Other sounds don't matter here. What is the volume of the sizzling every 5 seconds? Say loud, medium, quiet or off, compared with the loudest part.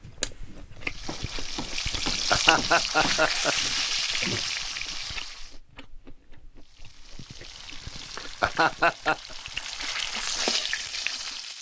loud, medium, loud.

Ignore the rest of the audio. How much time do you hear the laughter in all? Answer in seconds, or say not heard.
3 s.